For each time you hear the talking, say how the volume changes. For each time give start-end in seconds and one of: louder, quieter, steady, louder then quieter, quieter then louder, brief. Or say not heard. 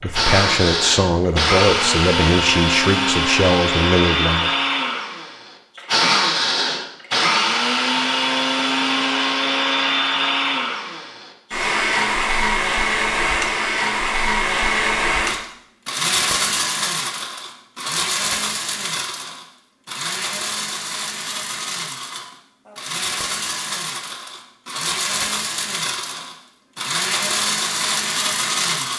0.0-4.5 steady.